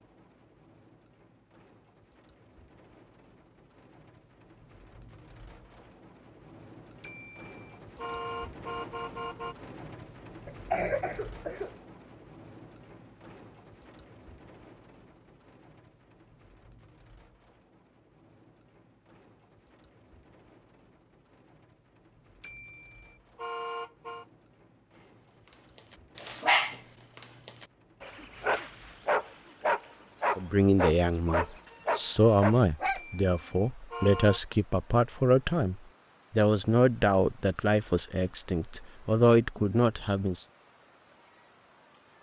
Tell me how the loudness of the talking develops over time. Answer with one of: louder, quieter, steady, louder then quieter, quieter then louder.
steady.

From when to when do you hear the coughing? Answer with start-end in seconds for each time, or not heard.
10.4-11.7.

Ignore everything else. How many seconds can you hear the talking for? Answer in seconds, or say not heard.
10 s.